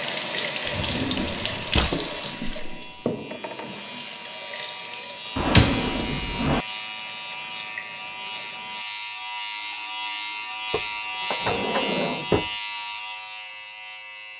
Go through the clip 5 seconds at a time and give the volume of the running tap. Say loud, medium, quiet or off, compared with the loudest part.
loud, quiet, off.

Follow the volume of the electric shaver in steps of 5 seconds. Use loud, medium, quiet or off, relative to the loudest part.
medium, loud, loud.